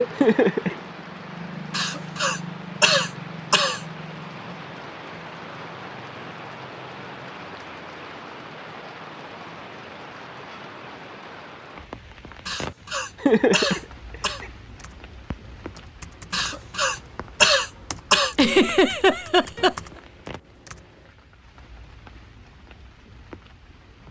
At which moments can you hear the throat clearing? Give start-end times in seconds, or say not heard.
1.7-3.9, 12.4-14.4, 16.3-18.4.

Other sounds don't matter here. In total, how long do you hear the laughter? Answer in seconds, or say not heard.
3 s.